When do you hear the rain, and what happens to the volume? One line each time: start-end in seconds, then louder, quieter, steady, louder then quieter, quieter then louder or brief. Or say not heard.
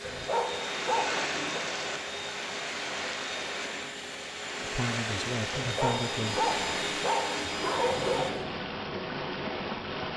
0.0-10.1 steady.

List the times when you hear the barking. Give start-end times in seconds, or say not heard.
0.0-1.6, 5.5-8.4.